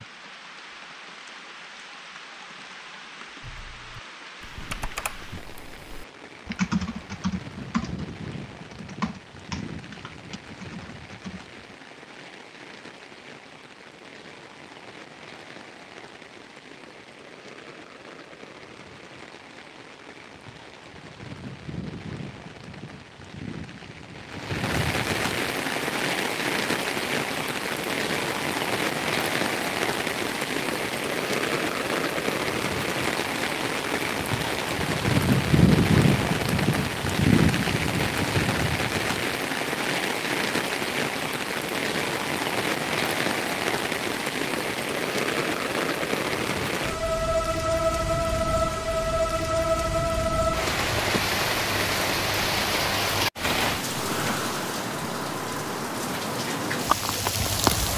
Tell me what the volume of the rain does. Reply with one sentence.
The loudness of the rain goes up.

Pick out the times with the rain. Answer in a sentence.
You can hear the rain from 0.0 to 57.9 s.